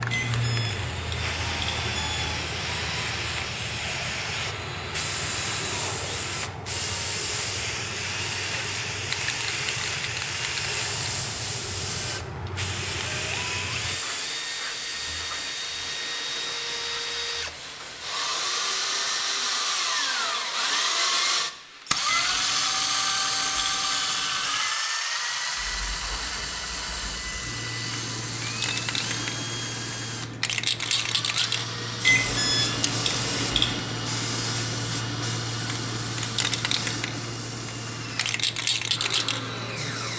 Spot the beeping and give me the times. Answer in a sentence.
You can hear the beeping from 0.1 to 2.4 s, from 22.1 to 24.8 s and from 32.0 to 33.8 s.